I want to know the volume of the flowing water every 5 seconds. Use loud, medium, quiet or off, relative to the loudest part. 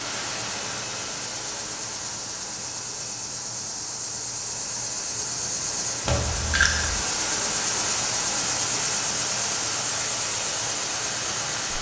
medium, loud, loud.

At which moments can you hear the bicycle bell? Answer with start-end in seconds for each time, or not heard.
6.0-7.0.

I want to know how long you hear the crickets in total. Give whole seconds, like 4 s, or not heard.
12 s.